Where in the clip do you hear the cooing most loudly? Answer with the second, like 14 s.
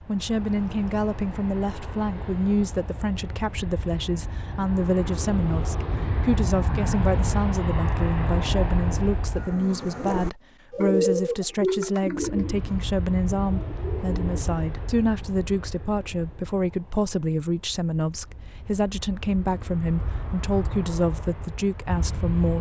11 s.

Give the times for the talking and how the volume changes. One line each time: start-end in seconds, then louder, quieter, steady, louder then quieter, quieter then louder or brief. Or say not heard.
0.1-22.5 steady.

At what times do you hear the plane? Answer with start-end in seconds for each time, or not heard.
0.0-9.6, 12.1-22.5.